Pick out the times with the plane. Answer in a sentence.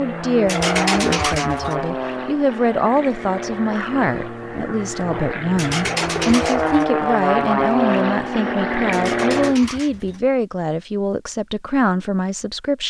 You can hear the plane from 0.0 to 9.6 s.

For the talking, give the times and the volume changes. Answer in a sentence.
The talking can be heard from 0.0 to 12.8 s, at a steady volume.